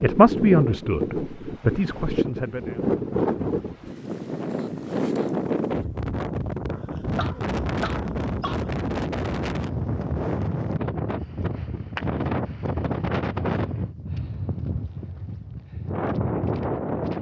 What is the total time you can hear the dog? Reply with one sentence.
You can hear the dog for 2 seconds altogether.